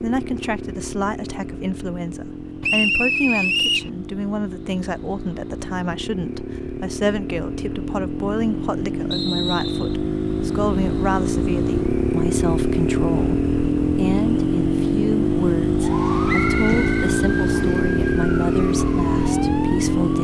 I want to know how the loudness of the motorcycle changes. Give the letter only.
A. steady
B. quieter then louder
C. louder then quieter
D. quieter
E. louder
E.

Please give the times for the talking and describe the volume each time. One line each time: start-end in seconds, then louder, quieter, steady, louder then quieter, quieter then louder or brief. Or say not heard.
0.0-20.1 steady.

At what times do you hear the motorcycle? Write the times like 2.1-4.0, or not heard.
0.0-20.1.